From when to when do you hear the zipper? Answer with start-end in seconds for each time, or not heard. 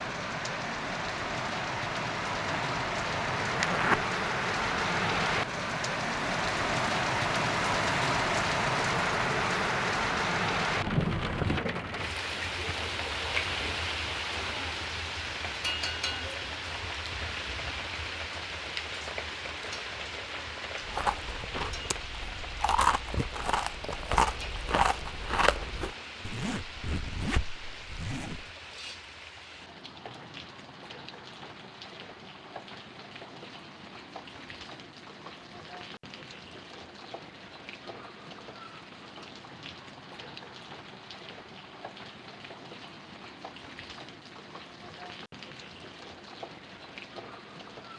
2.5-4.0, 26.2-28.5.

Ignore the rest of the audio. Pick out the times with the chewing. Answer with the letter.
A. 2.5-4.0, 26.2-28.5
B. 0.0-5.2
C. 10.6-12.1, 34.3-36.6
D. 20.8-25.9
D.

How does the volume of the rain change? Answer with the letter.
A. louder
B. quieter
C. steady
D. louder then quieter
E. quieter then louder
B.